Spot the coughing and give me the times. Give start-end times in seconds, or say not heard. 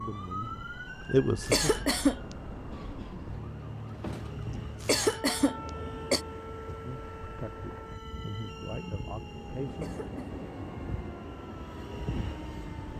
1.4-2.2, 4.8-6.2, 9.7-10.2.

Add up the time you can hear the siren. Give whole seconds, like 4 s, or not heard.
13 s.